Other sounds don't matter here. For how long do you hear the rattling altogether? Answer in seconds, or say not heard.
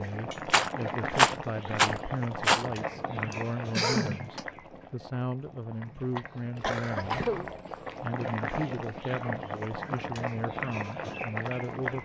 3 s.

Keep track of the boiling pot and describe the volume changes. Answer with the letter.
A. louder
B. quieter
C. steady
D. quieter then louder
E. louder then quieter
D.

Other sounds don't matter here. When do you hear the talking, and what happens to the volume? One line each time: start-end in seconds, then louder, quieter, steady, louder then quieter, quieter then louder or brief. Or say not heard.
0.0-12.0 steady.